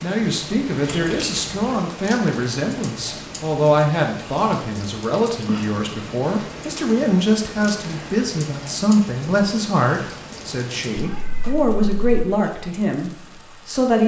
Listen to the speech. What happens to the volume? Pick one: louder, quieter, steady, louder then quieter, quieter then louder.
steady.